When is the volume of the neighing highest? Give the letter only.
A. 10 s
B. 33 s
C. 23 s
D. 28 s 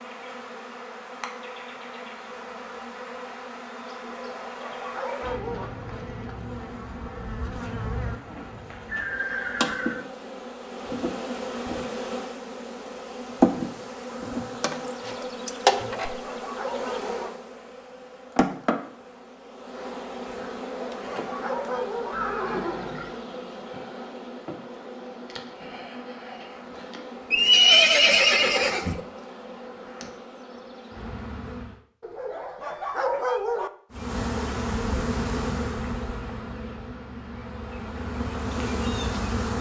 D.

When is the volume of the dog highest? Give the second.
33 s.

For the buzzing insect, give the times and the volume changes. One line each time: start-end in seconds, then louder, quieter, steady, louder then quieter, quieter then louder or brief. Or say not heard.
0.0-31.8 louder then quieter
33.9-39.5 quieter then louder.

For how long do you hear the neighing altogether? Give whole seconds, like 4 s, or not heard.
4 s.